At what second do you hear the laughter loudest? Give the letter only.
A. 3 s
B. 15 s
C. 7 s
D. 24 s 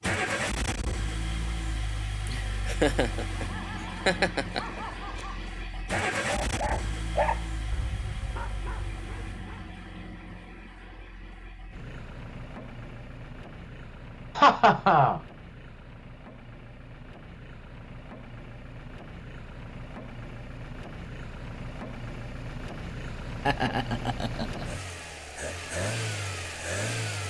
B.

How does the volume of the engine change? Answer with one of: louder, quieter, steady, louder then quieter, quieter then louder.
quieter then louder.